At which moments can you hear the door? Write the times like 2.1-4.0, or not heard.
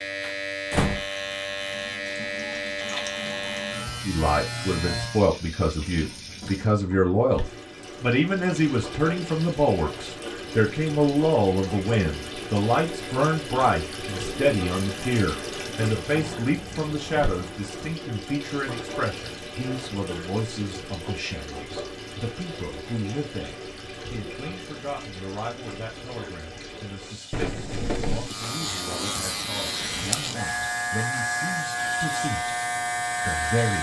0.2-1.1, 15.9-17.9, 27.3-28.4.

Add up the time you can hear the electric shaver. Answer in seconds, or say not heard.
11 s.